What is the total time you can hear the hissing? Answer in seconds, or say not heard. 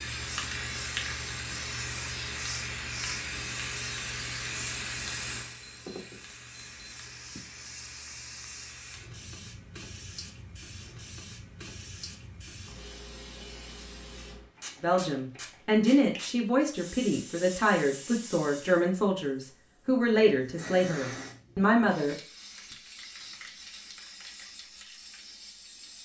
26 s.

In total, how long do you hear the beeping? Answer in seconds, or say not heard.
2 s.